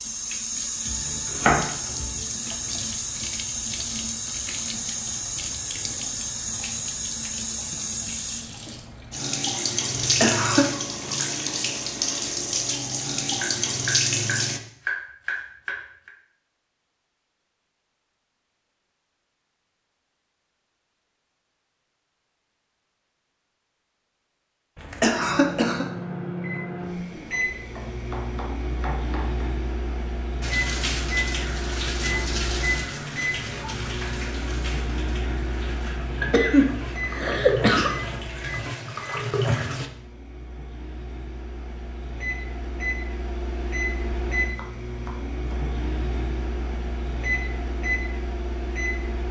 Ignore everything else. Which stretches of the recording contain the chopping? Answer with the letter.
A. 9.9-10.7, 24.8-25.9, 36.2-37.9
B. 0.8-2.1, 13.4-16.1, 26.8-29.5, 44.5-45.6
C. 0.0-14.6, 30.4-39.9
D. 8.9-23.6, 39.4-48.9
B.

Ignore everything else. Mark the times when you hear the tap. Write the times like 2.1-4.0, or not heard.
0.0-14.6, 30.4-39.9.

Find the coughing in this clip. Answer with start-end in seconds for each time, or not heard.
9.9-10.7, 24.8-25.9, 36.2-37.9.